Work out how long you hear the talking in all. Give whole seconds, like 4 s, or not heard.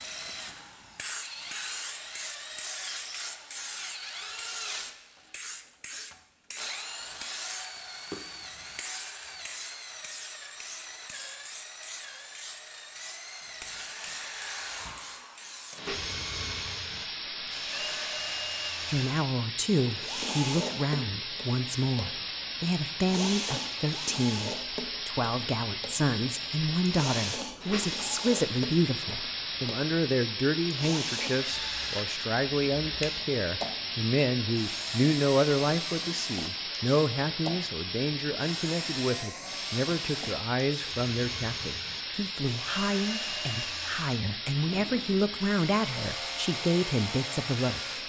29 s.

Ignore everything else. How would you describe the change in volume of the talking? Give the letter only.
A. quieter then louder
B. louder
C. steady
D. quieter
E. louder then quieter
C.